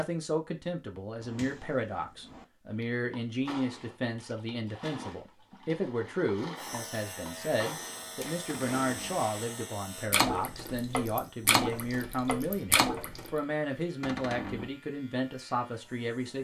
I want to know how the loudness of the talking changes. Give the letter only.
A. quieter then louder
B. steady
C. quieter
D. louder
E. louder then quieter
B.